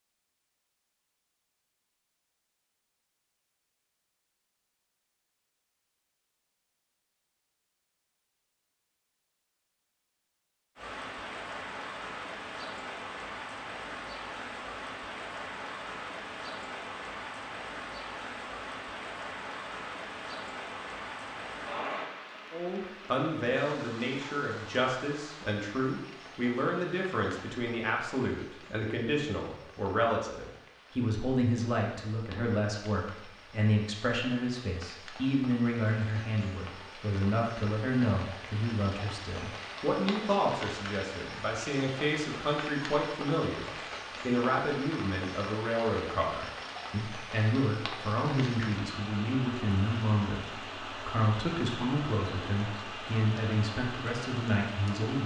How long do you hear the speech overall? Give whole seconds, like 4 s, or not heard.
33 s.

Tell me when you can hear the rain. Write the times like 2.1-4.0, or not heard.
10.8-55.2.